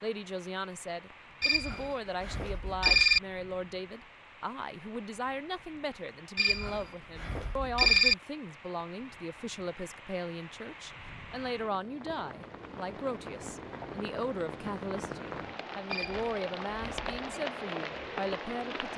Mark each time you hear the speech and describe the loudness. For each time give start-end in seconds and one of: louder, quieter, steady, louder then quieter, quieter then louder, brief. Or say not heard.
0.0-18.9 steady.